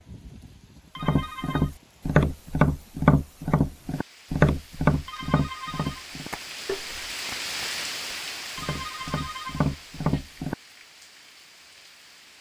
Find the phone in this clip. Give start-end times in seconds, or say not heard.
0.9-1.7, 5.0-6.0, 8.6-10.2.